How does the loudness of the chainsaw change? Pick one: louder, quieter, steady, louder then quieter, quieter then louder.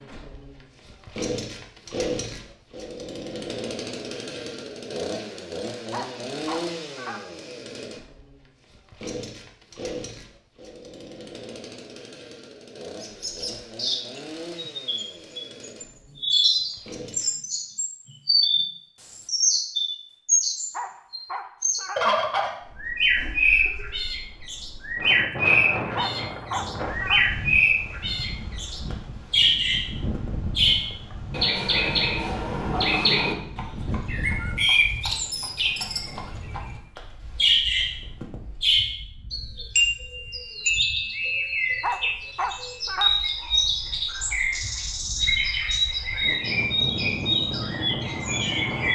quieter.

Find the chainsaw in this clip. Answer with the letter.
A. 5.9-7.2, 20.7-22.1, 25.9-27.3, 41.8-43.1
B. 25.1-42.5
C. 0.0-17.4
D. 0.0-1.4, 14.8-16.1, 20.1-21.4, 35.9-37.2
C.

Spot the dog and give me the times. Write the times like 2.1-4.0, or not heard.
5.9-7.2, 20.7-22.1, 25.9-27.3, 41.8-43.1.